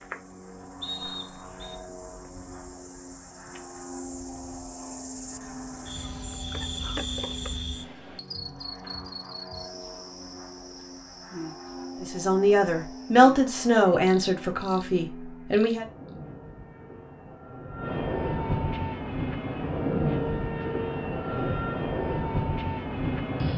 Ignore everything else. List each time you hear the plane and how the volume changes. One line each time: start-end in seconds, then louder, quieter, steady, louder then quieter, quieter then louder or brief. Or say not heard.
0.0-23.5 louder.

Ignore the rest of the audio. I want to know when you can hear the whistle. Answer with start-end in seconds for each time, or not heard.
0.8-1.8.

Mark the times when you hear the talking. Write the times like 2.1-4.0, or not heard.
12.0-15.8.